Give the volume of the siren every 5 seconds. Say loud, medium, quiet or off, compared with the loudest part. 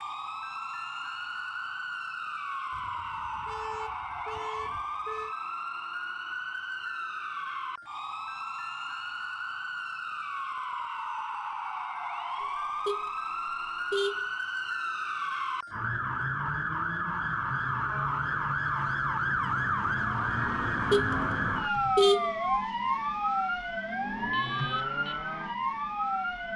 medium, medium, medium, loud, loud, loud.